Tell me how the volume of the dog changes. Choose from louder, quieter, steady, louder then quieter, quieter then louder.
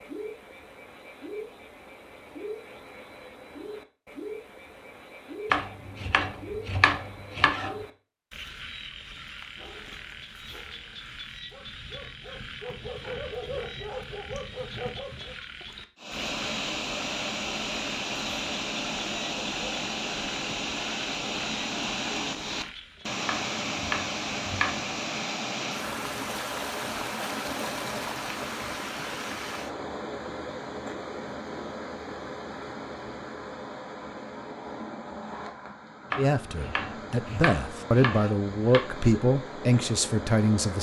louder.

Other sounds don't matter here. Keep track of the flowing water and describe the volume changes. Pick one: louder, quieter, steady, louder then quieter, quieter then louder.
quieter.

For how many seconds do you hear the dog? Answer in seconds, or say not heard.
6 s.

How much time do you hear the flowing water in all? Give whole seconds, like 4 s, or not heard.
25 s.